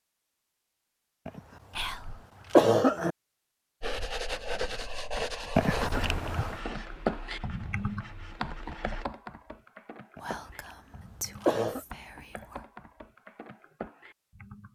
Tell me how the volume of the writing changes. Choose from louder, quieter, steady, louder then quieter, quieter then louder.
quieter.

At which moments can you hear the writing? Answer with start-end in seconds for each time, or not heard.
3.8-9.1.